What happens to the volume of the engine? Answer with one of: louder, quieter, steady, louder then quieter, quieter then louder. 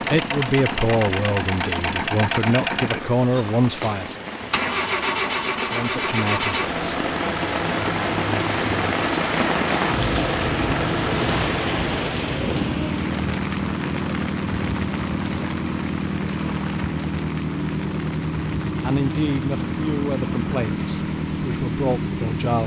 steady.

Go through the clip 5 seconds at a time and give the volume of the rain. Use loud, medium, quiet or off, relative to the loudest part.
medium, loud, loud, medium, quiet.